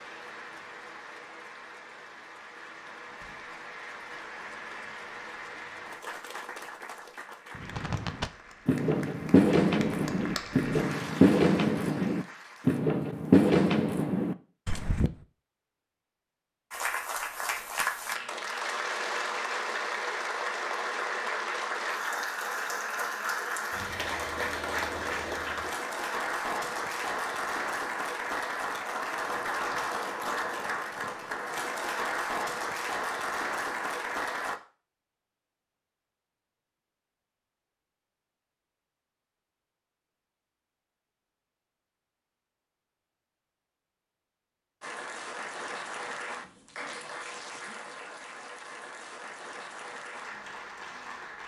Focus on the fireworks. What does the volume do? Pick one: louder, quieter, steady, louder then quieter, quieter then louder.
louder.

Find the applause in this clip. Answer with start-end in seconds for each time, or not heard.
0.0-12.8, 16.7-34.6, 44.8-51.4.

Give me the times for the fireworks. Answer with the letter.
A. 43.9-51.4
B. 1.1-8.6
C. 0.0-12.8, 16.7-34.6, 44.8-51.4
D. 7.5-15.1
D.